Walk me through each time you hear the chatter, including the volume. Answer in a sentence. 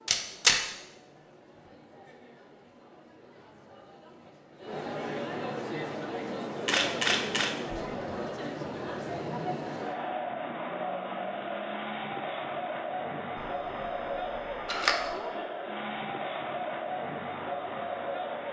The chatter can be heard from 0.0 to 18.4 s, getting louder.